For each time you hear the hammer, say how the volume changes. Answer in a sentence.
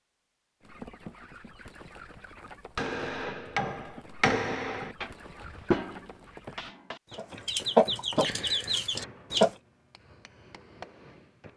You can hear the hammer from 2.8 to 11.5 s, getting quieter.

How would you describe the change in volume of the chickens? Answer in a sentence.
The loudness of the chickens goes up.